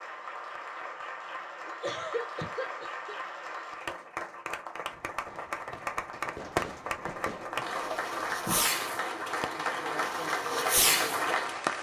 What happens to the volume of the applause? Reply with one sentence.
The loudness of the applause goes up.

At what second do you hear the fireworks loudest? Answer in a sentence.
The loudest moment of the fireworks is at 11 seconds.